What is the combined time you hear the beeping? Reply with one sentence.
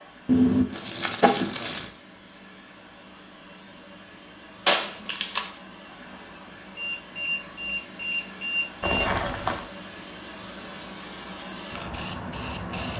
You can hear the beeping for 2 seconds altogether.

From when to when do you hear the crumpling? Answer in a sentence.
You can hear the crumpling from 0.2 to 1.9 s, from 4.7 to 5.5 s and from 8.8 to 9.7 s.